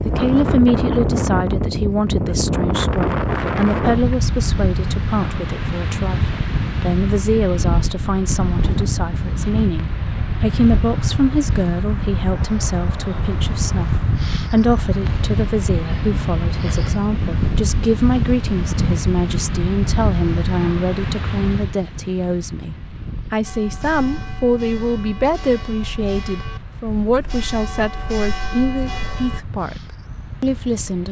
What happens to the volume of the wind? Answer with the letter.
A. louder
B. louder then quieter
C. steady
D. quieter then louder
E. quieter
E.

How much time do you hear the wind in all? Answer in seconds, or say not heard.
31 s.